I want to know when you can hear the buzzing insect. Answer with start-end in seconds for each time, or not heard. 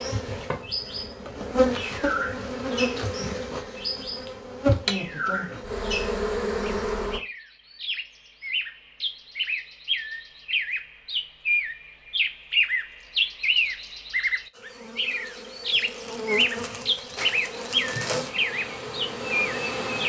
0.0-7.2, 14.6-20.0.